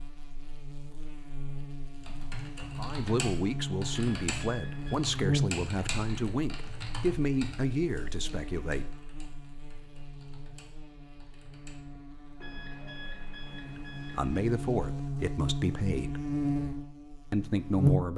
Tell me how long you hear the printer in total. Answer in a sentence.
You can't hear the printer here.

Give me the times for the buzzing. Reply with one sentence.
You can hear the buzzing from 0.0 to 18.1 s.